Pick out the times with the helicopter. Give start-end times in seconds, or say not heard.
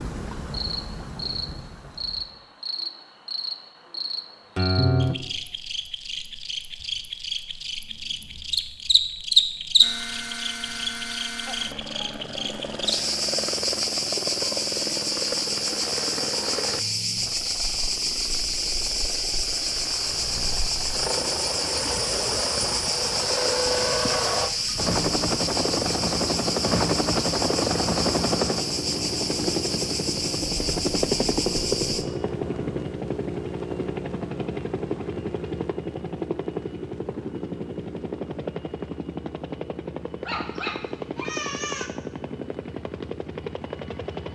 9.8-44.2.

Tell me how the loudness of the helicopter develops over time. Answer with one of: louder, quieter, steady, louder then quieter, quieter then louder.
louder then quieter.